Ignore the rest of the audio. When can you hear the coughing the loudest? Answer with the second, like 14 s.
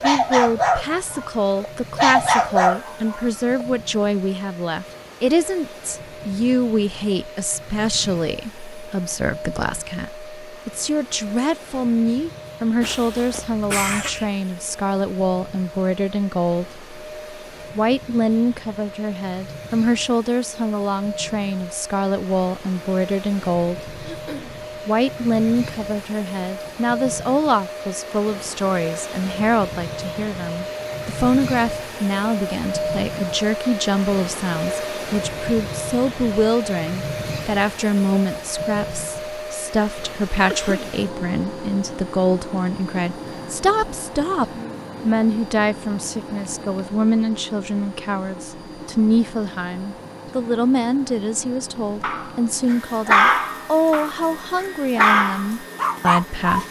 14 s.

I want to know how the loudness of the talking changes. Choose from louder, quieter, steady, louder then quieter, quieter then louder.
steady.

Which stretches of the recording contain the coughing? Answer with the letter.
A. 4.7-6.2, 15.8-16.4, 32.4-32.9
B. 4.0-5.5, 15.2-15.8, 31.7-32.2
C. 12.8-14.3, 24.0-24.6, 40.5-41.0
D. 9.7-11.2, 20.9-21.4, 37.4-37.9
C.